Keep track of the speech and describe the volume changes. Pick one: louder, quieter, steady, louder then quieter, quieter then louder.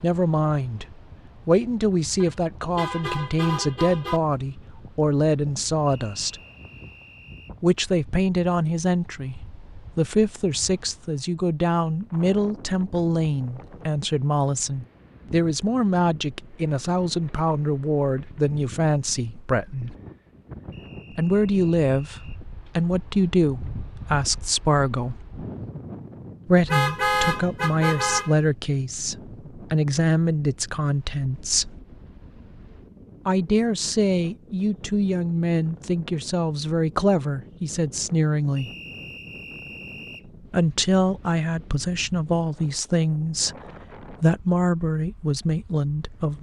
steady.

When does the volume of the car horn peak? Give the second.
27 s.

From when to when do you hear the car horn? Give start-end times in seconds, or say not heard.
2.2-4.2, 26.6-28.4.